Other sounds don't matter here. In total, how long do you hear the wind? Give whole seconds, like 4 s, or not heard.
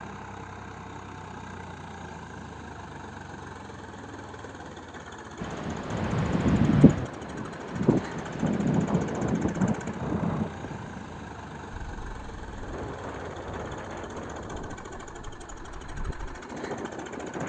12 s.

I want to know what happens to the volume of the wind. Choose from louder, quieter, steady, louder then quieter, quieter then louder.
quieter.